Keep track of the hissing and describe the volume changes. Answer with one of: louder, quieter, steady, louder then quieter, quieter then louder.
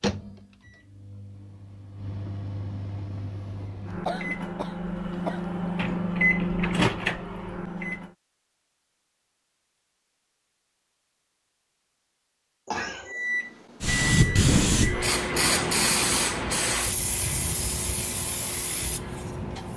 quieter.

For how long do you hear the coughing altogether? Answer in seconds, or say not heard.
2 s.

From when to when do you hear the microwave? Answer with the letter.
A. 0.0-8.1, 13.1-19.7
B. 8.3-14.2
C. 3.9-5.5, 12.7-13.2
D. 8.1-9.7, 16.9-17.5
A.